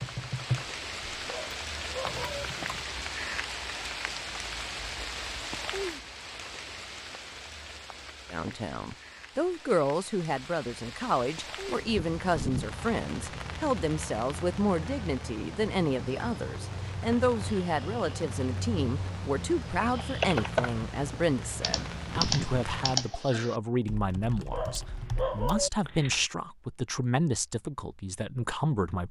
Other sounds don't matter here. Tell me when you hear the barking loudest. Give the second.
25 s.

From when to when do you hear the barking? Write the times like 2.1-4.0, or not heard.
1.2-2.5, 24.5-25.7.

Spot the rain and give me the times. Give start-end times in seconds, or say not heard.
0.0-23.1.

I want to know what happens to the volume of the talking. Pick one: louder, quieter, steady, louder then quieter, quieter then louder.
steady.